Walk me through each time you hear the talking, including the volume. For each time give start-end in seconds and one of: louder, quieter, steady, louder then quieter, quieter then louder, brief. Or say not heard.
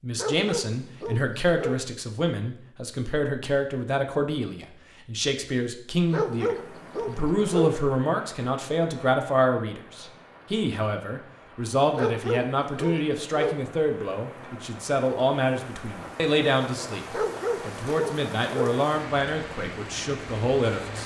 0.0-21.0 steady.